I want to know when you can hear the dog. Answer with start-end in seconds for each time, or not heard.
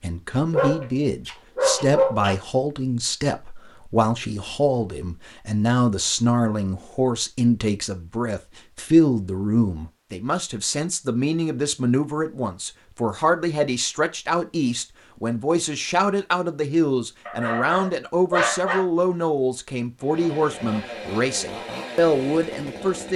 0.5-2.4, 17.2-18.9.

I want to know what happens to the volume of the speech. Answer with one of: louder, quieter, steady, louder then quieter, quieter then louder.
steady.